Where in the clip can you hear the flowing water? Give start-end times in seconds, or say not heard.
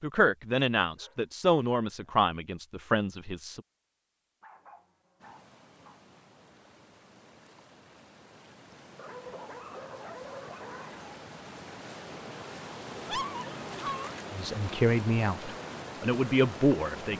5.2-17.1.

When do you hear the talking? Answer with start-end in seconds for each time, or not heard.
0.0-3.6, 14.3-17.1.